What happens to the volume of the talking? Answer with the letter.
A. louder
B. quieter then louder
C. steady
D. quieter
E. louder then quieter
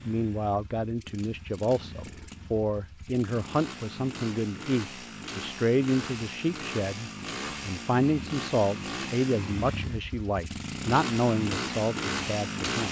C.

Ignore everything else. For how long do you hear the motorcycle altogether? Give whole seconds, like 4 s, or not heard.
13 s.